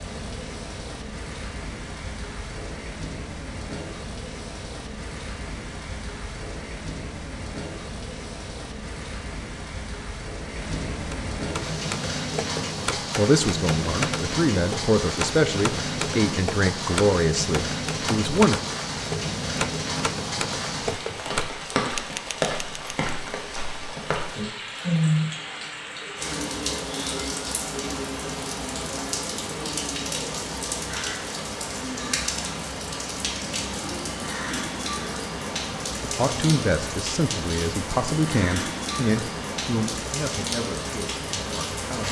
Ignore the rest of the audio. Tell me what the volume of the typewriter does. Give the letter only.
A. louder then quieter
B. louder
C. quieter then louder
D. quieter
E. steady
E.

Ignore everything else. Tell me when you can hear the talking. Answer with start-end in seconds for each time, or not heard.
12.9-18.6, 36.0-42.0.